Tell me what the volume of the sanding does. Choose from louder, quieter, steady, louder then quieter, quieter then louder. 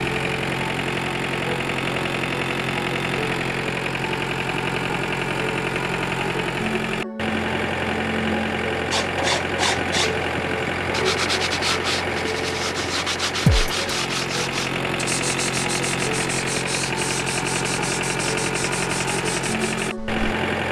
quieter.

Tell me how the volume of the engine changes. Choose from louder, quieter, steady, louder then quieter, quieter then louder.
steady.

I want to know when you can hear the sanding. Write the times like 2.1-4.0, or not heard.
8.9-20.2.